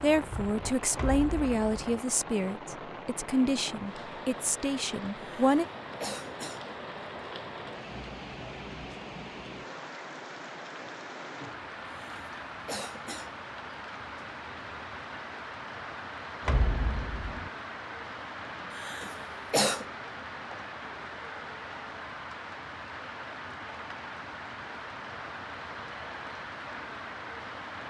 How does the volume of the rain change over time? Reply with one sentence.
The loudness of the rain stays about the same.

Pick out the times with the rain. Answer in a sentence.
You can hear the rain from 0.0 to 27.8 s.